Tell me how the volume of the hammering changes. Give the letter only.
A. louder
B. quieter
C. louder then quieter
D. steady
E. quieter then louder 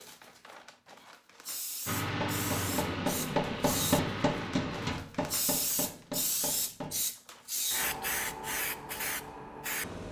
B.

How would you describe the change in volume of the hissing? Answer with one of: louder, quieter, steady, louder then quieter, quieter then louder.
louder.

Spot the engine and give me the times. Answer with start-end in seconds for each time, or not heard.
1.9-5.0.